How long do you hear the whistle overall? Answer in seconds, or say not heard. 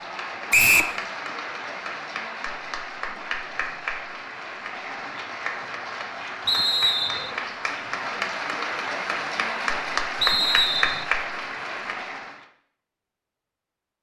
2 s.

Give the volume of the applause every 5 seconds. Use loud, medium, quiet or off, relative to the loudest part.
medium, loud, loud.